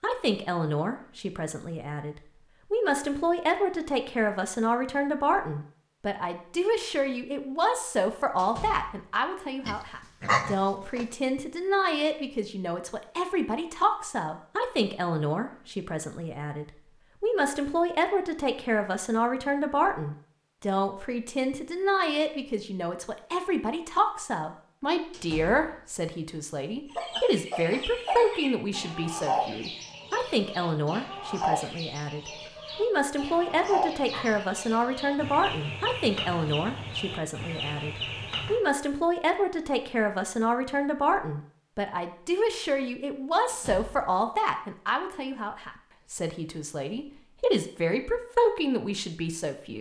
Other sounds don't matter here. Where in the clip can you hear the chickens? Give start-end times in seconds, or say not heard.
26.9-38.6.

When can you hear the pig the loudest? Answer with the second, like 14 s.
10 s.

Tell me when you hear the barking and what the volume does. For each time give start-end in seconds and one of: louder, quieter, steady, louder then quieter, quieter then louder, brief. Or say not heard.
not heard.